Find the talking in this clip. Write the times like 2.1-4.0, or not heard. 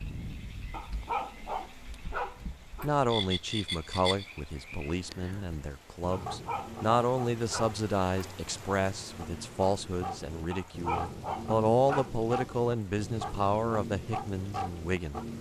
2.8-15.2.